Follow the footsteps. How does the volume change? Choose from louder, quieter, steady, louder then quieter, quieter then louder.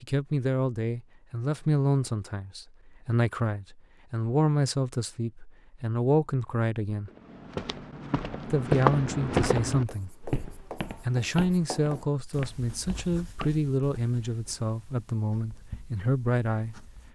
louder then quieter.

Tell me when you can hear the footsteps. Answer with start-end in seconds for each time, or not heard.
7.0-13.7.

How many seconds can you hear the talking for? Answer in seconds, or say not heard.
15 s.